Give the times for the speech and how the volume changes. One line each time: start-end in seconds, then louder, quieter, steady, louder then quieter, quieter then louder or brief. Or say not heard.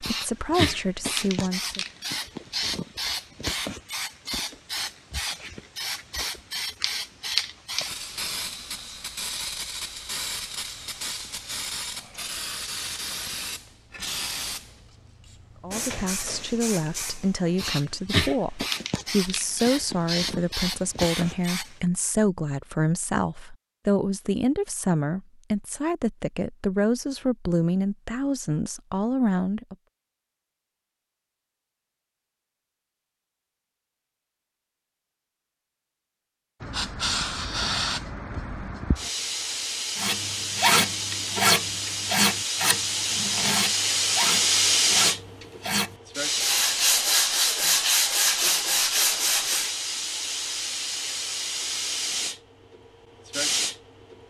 0.0-1.9 brief
15.6-29.8 steady.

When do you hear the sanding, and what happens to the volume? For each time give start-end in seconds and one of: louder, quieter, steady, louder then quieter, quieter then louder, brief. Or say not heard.
40.0-49.8 quieter then louder.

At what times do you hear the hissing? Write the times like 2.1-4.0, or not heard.
0.0-21.8, 36.6-54.2.